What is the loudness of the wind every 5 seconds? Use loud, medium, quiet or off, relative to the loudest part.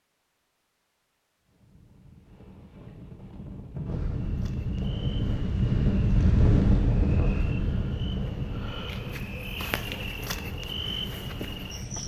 medium, loud, quiet.